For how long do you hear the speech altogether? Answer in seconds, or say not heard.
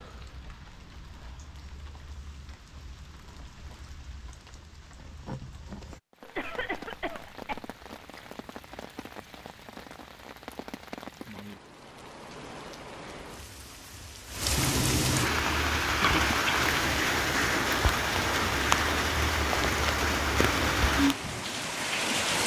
not heard.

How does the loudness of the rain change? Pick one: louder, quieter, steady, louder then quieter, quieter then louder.
louder.